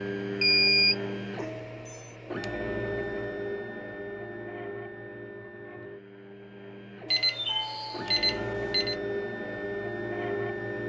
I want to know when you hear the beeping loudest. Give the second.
1 s.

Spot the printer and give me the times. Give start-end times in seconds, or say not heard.
0.0-10.8.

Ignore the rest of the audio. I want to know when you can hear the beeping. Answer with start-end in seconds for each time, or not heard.
0.4-1.9, 7.1-8.9.